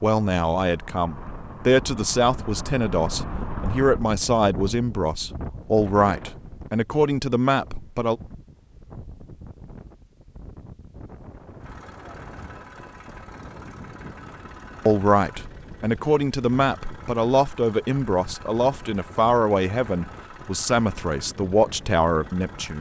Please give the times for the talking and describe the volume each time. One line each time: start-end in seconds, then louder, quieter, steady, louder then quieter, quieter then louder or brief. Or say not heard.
0.0-8.2 steady
14.8-22.7 steady.